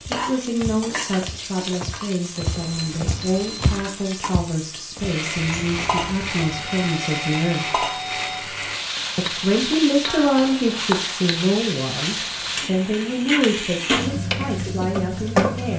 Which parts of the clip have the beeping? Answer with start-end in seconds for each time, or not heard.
2.4-3.7, 6.4-8.4, 12.2-12.7.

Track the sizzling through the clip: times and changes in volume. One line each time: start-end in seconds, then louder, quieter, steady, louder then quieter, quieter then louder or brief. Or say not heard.
0.0-15.7 louder.